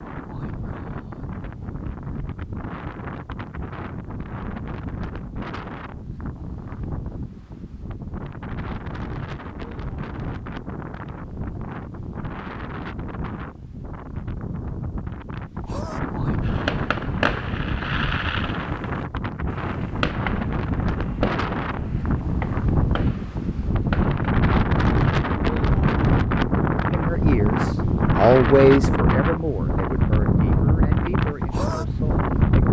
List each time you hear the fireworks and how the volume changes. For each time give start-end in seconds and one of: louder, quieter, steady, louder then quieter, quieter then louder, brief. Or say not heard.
16.4-24.2 quieter.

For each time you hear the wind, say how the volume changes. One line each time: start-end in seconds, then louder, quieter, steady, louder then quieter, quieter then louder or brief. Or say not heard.
0.0-32.6 louder.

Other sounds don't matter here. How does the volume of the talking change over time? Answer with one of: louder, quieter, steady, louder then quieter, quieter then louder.
louder then quieter.